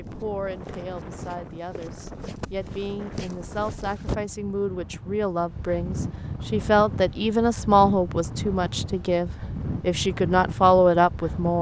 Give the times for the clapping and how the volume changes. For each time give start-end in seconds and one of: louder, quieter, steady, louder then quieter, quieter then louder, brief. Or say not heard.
not heard.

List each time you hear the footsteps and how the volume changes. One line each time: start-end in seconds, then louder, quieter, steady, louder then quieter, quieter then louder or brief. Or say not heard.
0.0-4.2 louder.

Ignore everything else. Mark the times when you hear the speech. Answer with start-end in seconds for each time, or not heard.
0.0-11.5.